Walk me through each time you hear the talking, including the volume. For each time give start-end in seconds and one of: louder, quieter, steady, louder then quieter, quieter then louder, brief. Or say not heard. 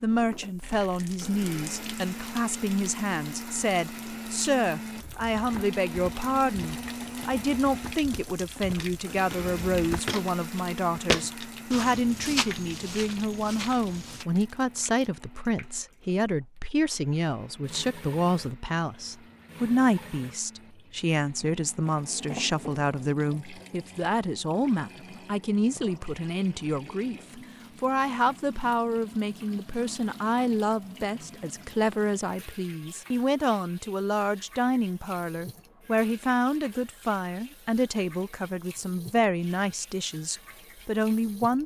0.0-41.6 steady.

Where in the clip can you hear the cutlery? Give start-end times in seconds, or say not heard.
not heard.